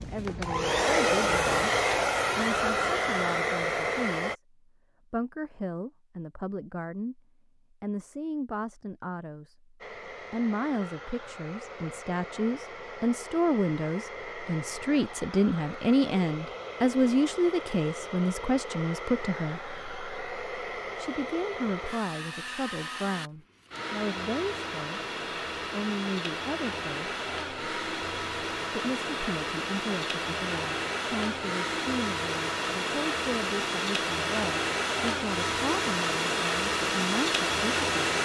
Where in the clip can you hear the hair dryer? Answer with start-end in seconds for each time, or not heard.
0.0-4.3, 9.8-38.2.